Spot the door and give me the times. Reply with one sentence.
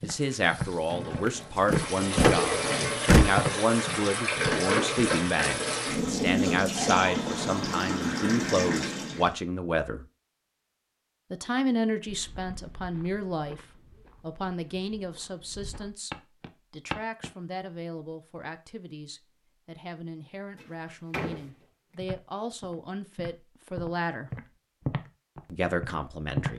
The door can be heard from 1.2 to 3.2 s and from 20.6 to 21.4 s.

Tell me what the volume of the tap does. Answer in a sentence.
The loudness of the tap goes up.